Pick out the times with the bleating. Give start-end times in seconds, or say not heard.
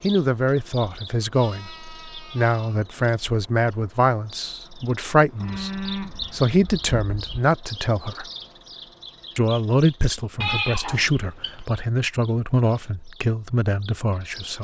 1.3-2.8, 5.4-7.4, 10.4-11.6.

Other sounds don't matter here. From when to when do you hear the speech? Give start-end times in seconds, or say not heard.
0.0-8.2, 9.3-14.6.